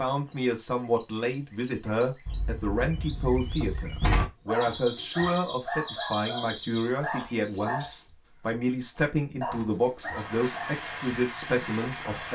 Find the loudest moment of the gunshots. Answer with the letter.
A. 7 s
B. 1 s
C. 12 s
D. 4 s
D.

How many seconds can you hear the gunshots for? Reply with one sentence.
The gunshots can be heard for 2 seconds in total.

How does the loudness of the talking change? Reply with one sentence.
The volume of the talking stays about the same.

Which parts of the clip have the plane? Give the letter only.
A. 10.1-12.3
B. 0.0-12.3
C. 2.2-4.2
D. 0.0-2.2
A.